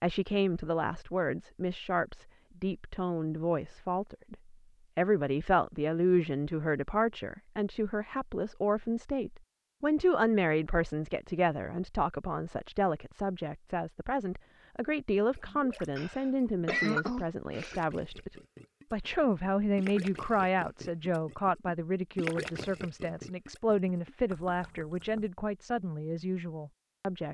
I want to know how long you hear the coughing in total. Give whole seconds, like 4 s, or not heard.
2 s.